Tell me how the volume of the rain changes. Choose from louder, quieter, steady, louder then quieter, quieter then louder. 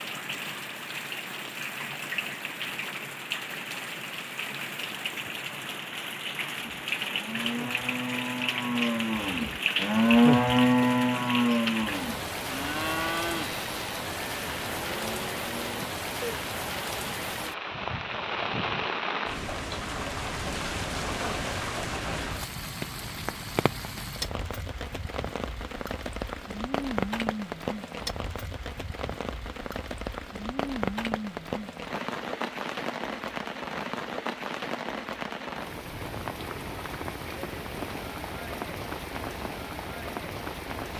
steady.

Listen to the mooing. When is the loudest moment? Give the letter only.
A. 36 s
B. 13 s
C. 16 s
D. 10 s
D.